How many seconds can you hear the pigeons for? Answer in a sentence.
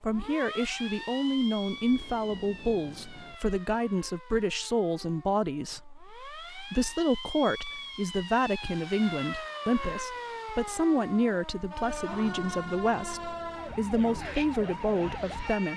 The pigeons can't be heard in this clip.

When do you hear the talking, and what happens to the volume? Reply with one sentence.
The talking can be heard from 0.0 to 15.7 s, at a steady volume.